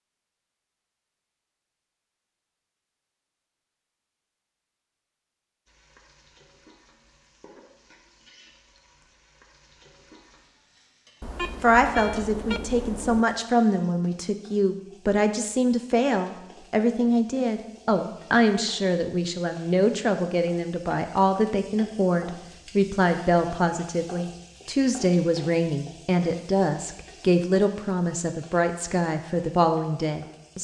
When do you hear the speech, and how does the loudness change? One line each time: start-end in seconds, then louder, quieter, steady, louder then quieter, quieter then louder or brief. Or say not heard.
11.6-30.6 steady.